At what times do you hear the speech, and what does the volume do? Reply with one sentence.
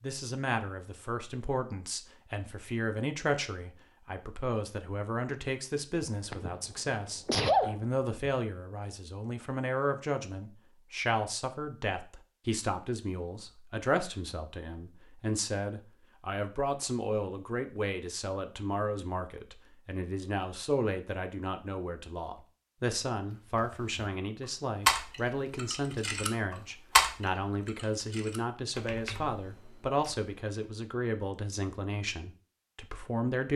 The speech can be heard from 0.0 to 33.5 s, at a steady volume.